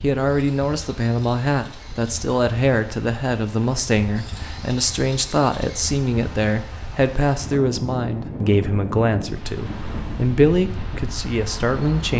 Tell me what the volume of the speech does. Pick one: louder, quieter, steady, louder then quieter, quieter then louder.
steady.